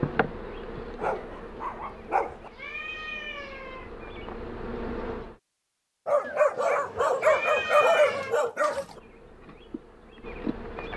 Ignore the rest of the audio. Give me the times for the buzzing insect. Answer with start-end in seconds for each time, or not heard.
0.0-5.3, 8.8-10.9.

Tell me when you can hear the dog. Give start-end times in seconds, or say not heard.
0.9-2.5, 6.0-9.0.